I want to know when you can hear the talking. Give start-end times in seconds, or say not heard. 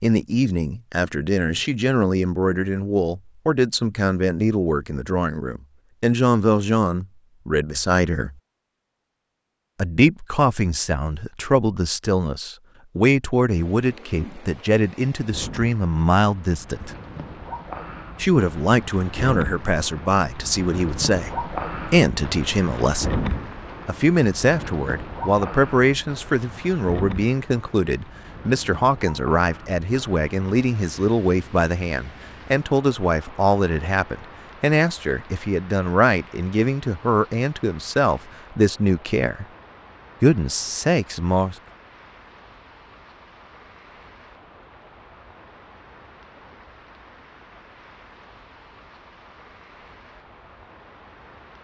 0.0-8.3, 9.8-16.9, 18.1-23.1, 23.9-39.5, 40.2-41.5.